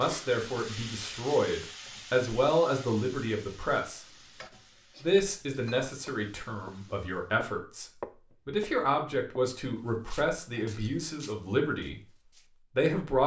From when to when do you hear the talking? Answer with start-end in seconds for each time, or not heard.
0.0-4.0, 5.0-7.8, 8.4-12.0, 12.8-13.2.